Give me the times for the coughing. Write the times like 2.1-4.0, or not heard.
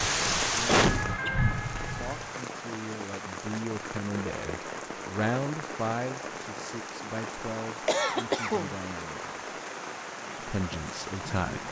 0.7-1.5, 7.8-8.8.